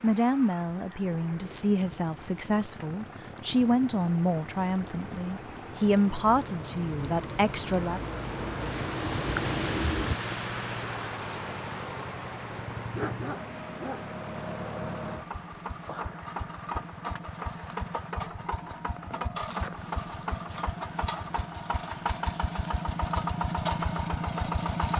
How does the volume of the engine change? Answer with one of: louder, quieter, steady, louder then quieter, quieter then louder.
louder.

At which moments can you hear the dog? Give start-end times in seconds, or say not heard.
12.9-14.2.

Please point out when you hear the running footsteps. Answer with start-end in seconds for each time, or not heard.
not heard.